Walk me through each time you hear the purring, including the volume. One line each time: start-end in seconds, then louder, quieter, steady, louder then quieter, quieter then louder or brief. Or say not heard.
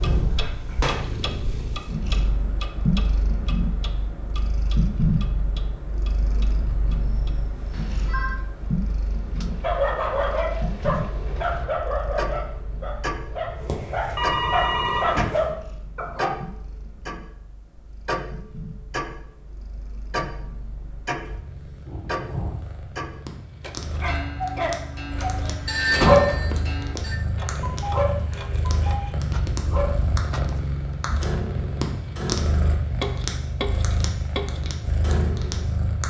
0.0-36.0 quieter then louder.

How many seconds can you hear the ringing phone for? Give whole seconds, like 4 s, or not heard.
4 s.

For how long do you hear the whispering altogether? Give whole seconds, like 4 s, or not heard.
not heard.